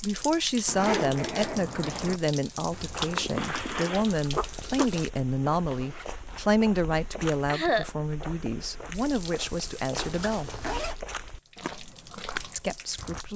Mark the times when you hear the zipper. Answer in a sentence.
The zipper can be heard from 0.7 to 2.2 s, from 5.7 to 6.5 s and from 9.9 to 10.9 s.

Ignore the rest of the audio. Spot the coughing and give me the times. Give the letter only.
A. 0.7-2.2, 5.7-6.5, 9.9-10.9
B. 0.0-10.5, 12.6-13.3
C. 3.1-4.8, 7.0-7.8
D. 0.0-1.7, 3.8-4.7
C.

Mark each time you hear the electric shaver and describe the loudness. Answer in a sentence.
The electric shaver can't be heard in this clip.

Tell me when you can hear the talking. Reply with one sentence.
The talking can be heard from 0.0 to 10.5 s and from 12.6 to 13.3 s.